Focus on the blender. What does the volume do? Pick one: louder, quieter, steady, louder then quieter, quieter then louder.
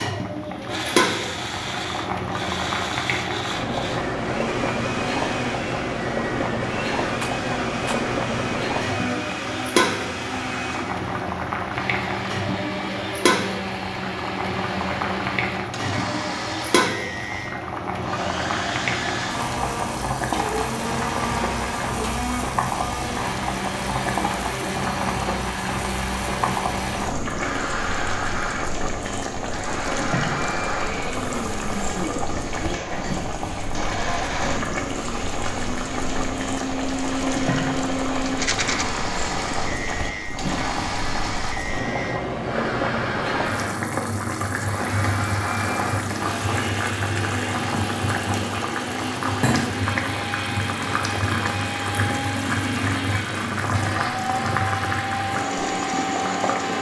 steady.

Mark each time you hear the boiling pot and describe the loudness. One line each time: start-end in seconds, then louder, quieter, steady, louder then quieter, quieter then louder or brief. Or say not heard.
0.0-56.7 steady.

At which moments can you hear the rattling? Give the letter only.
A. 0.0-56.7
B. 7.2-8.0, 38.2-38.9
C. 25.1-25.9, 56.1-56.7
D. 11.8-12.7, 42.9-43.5
B.